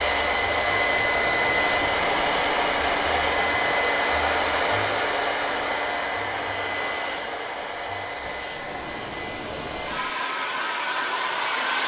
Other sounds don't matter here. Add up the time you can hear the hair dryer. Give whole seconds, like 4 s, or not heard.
12 s.